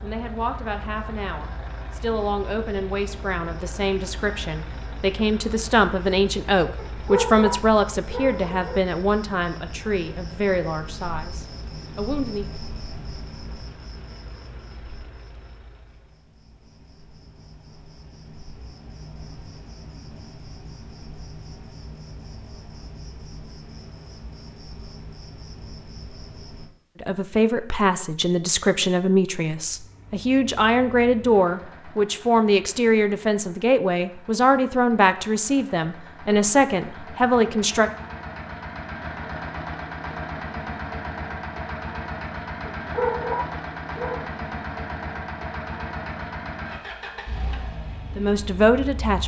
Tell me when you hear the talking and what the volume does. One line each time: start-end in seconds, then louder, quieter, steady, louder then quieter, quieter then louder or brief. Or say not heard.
0.0-12.4 louder then quieter
27.0-37.9 steady
48.0-49.2 brief.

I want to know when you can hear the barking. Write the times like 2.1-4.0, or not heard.
6.8-8.8, 42.6-44.3.